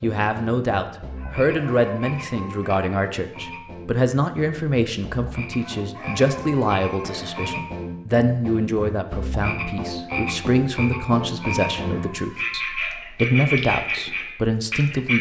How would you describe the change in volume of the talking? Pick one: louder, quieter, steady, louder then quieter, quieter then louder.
steady.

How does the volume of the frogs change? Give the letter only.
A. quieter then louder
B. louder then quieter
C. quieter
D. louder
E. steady
D.